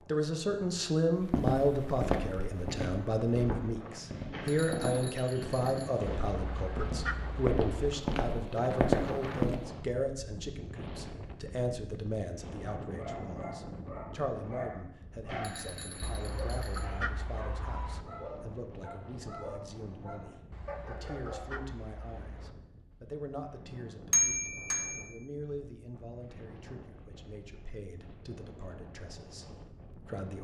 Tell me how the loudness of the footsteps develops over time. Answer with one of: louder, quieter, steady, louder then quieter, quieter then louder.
quieter then louder.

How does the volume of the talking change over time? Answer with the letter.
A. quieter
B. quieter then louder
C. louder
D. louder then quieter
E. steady
A.